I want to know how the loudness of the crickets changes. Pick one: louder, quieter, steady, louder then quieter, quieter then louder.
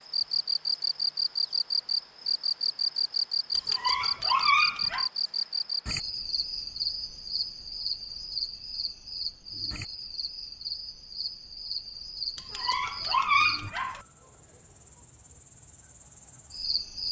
quieter.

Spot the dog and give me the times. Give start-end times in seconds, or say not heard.
3.5-5.1, 12.3-14.0.